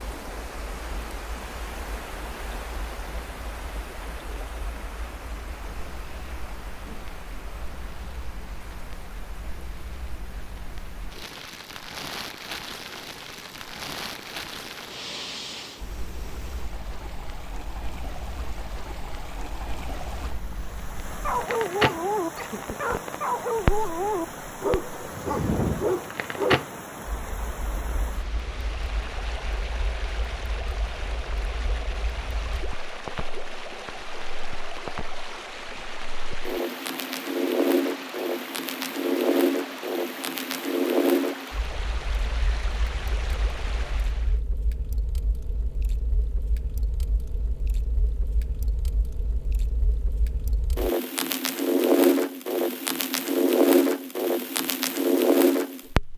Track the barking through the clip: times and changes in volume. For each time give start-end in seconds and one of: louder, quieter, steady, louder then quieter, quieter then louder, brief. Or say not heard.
21.2-26.6 steady.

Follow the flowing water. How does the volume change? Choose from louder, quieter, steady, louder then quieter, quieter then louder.
quieter then louder.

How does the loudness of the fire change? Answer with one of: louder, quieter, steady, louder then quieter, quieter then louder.
louder.